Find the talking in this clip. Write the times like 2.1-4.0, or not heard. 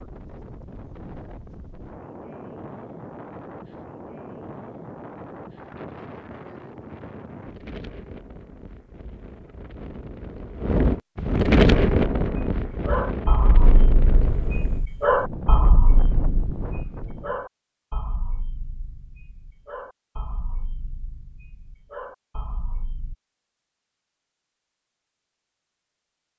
not heard.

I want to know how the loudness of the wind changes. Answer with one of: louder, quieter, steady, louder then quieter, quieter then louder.
louder then quieter.